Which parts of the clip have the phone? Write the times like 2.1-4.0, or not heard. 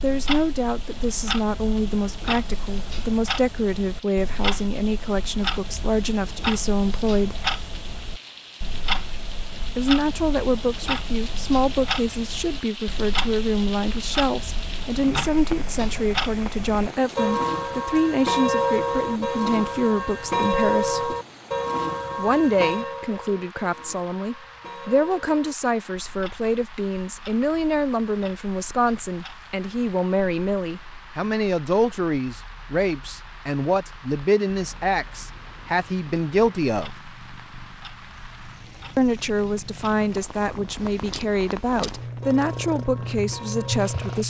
not heard.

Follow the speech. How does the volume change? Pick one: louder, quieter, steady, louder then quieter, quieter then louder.
steady.